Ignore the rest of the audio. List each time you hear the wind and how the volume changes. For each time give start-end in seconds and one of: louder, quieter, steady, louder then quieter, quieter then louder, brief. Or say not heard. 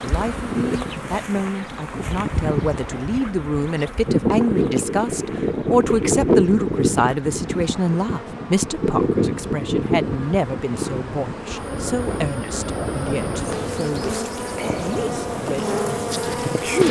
0.0-16.8 louder then quieter.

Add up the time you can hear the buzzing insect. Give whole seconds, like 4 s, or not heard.
17 s.